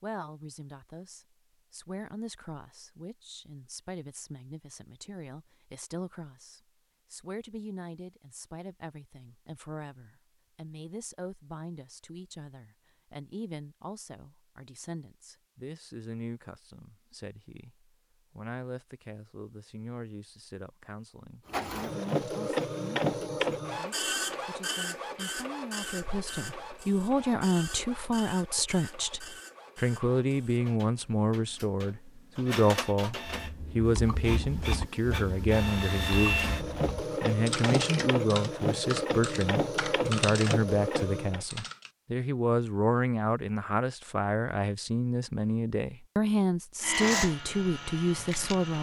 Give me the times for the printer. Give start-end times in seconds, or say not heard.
21.4-41.5, 46.8-48.7.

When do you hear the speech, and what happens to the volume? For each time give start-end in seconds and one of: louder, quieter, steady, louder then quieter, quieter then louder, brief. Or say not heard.
0.0-48.7 louder.